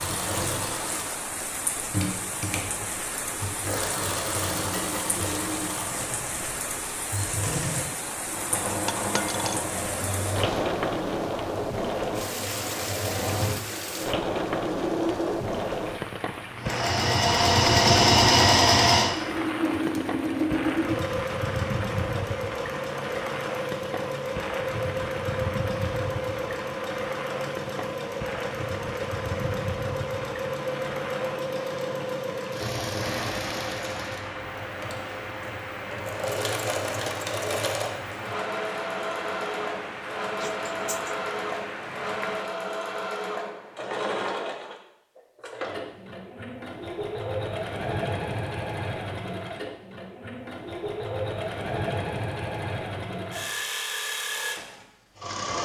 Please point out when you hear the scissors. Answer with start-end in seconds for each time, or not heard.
not heard.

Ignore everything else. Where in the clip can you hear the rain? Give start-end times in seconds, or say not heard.
0.0-42.5.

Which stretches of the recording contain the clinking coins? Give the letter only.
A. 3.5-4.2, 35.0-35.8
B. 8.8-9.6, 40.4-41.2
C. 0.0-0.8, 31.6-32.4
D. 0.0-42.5
B.